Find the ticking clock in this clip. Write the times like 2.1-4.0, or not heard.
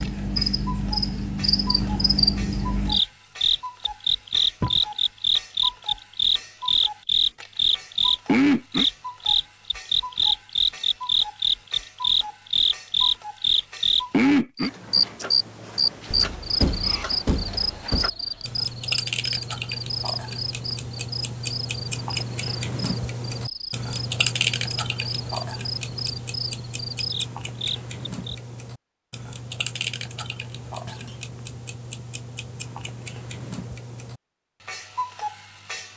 0.0-35.9.